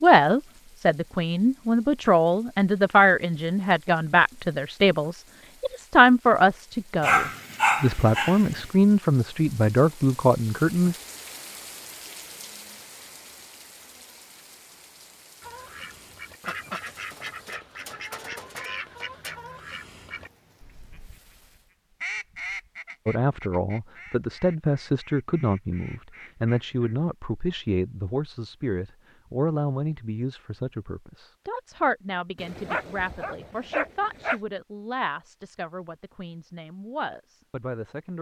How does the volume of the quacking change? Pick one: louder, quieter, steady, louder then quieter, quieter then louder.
quieter.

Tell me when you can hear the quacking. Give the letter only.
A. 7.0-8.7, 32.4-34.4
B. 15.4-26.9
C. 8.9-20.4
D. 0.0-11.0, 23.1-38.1
B.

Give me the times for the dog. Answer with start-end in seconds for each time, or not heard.
7.0-8.7, 32.4-34.4.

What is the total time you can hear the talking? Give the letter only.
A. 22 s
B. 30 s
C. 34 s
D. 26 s
D.